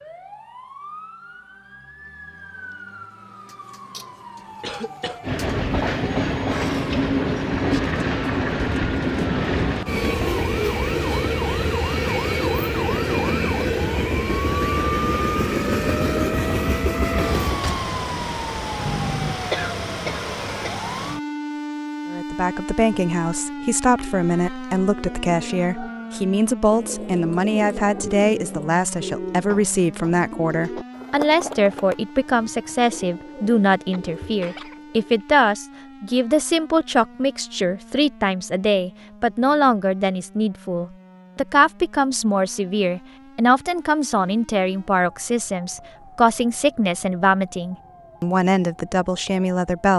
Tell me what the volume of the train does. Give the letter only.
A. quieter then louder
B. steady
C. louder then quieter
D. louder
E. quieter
E.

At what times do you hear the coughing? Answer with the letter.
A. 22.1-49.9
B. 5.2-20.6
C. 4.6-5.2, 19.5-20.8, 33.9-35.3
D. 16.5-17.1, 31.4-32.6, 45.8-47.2
C.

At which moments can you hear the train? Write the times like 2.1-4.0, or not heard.
5.2-20.6.